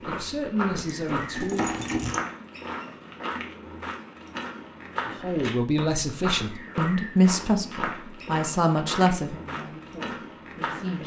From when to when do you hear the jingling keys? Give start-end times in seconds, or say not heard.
0.8-2.2.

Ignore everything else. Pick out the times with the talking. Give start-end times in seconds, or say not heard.
0.1-1.7, 5.2-11.0.